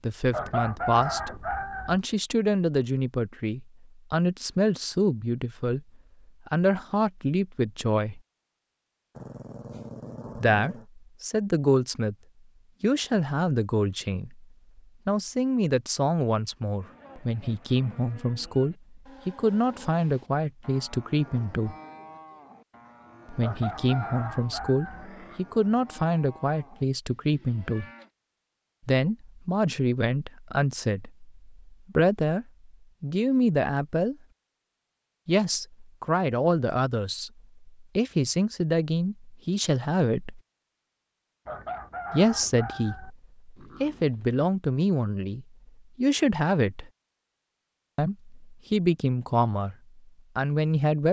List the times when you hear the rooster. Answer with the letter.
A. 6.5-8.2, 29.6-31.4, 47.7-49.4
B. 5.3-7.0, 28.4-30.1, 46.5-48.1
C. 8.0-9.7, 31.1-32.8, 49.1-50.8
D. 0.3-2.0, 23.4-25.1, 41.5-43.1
D.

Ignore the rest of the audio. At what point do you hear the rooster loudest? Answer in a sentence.
The loudest moment of the rooster is at 1 second.